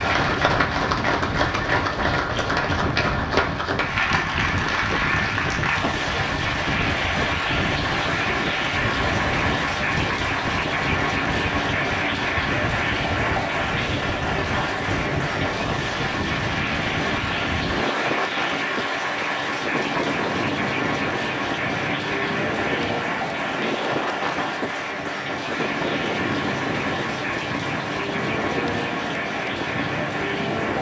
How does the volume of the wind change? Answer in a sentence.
The volume of the wind stays about the same.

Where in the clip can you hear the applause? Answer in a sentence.
You can hear the applause from 0.0 to 30.7 s.